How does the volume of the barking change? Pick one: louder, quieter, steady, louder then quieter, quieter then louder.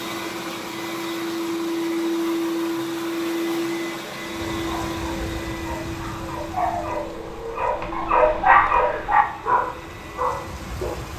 louder then quieter.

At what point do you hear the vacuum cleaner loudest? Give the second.
2 s.